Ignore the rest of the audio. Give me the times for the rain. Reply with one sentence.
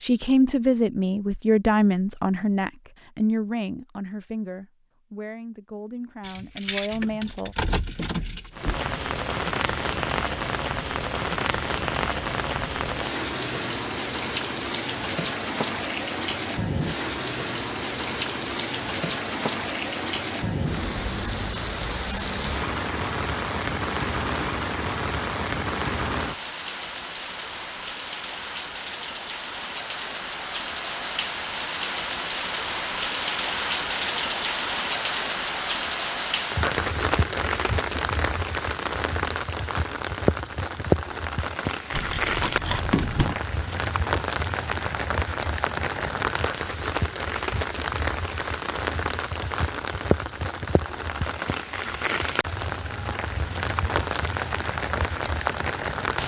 You can hear the rain from 8.5 to 56.2 s.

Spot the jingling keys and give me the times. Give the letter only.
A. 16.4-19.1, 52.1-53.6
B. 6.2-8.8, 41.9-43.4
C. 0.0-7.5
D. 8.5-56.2
B.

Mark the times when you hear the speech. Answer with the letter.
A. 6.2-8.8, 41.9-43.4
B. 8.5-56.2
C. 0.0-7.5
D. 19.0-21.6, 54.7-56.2
C.